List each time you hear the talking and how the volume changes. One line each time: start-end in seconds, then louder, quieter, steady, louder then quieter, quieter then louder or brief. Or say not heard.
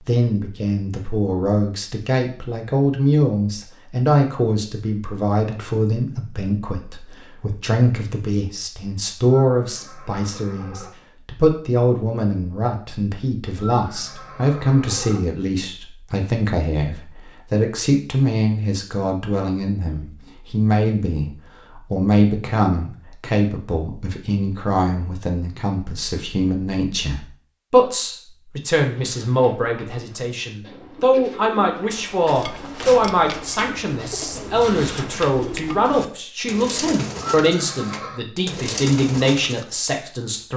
0.0-40.5 steady.